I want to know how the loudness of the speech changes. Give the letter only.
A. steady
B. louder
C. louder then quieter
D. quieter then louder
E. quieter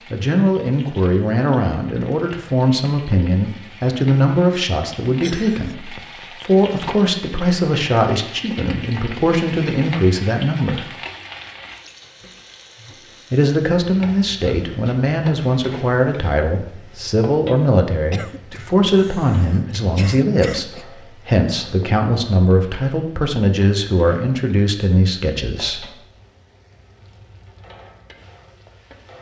A.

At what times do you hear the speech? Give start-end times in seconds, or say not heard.
0.1-10.9, 13.3-25.9.